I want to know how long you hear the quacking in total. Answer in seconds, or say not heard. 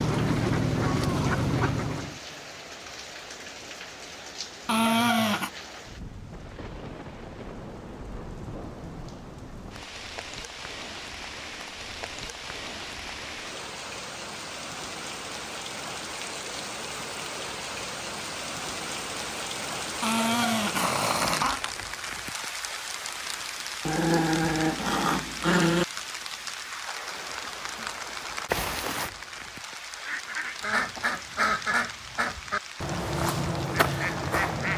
7 s.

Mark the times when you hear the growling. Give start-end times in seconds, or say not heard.
4.7-5.5, 20.0-21.6, 23.9-25.9.